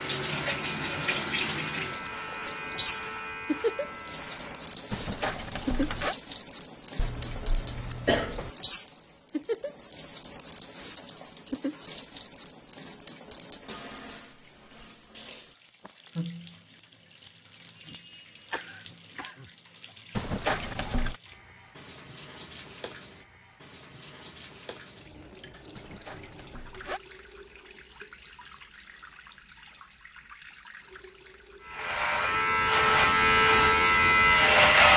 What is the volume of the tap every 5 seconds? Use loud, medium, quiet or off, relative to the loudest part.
loud, loud, medium, medium, quiet, quiet, quiet.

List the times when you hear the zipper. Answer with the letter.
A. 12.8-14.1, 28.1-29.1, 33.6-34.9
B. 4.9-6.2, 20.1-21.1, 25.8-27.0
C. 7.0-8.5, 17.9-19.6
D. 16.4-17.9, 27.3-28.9
B.